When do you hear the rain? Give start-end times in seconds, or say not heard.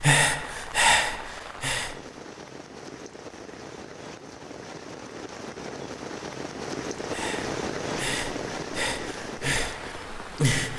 0.2-10.7.